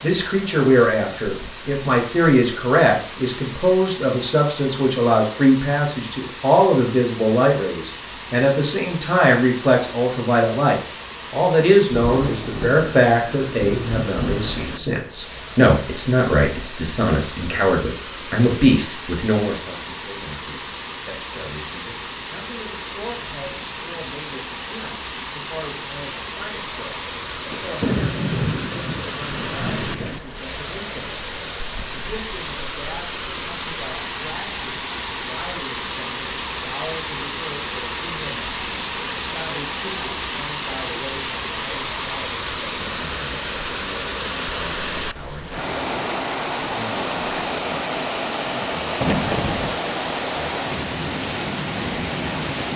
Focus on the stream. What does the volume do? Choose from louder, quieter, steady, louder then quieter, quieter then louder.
louder.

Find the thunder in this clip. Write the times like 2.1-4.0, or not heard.
11.9-14.8, 27.5-30.2, 49.0-49.8.